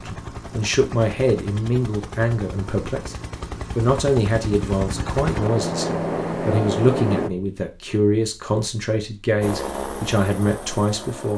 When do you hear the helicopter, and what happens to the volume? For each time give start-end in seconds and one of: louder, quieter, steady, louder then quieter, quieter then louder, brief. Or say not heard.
0.0-7.3 louder
9.4-11.3 brief.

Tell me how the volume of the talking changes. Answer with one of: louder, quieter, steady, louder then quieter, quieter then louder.
steady.